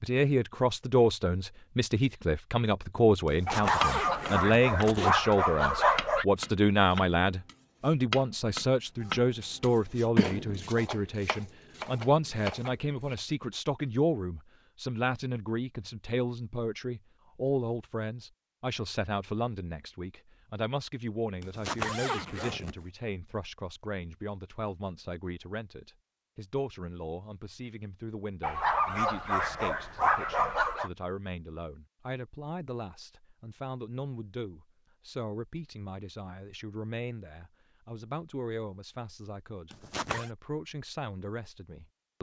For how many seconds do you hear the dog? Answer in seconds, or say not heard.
5 s.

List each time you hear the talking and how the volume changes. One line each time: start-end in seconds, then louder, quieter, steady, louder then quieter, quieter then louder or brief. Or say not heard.
0.0-42.1 quieter.